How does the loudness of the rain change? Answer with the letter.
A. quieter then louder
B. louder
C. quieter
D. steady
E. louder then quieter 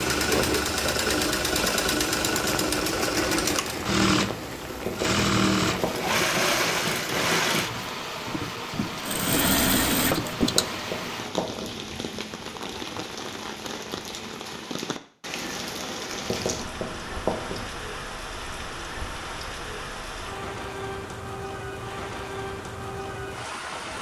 D.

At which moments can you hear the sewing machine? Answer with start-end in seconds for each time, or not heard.
0.0-11.2.